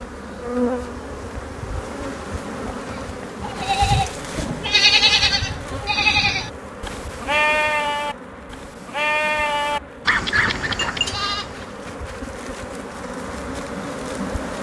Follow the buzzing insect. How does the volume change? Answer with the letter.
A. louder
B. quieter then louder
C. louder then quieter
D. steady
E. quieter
B.